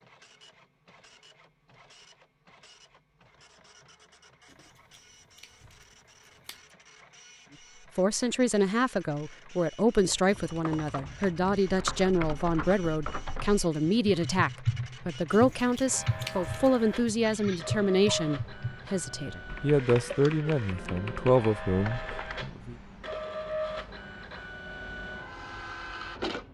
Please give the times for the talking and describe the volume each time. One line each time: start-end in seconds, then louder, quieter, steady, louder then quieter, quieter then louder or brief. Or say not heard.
8.0-22.8 steady.